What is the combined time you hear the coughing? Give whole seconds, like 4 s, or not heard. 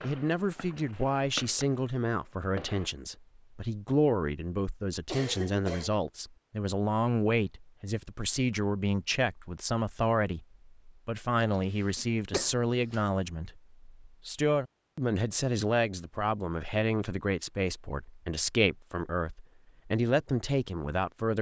2 s.